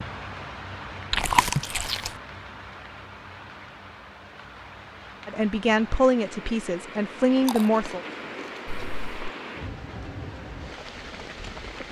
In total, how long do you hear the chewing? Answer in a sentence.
You can hear the chewing for 2 seconds altogether.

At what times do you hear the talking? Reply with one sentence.
You can hear the talking from 5.2 to 8.0 s.